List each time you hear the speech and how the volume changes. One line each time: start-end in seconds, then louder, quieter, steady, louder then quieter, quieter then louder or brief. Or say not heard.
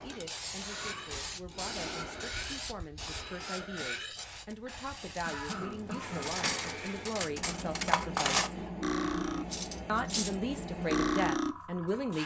0.0-8.5 louder
9.8-12.2 brief.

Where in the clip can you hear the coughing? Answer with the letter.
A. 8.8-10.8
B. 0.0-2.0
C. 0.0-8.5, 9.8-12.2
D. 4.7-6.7
D.